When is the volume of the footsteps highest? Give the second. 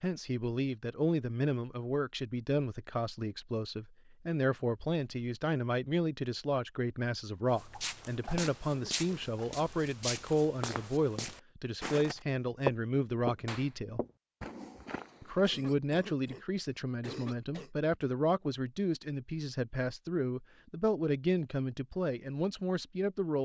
13 s.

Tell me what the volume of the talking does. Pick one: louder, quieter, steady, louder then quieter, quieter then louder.
steady.